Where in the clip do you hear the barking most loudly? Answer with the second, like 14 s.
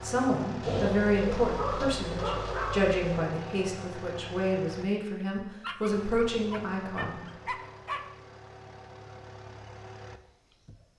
2 s.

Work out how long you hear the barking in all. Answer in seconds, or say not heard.
4 s.